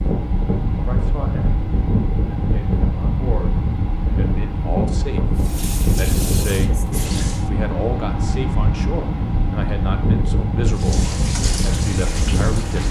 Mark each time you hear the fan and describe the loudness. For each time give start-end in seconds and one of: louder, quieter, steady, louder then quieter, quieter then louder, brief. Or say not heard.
0.0-12.8 steady.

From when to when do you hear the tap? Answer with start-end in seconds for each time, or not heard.
5.3-7.5, 10.7-12.8.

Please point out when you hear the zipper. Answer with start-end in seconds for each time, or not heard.
not heard.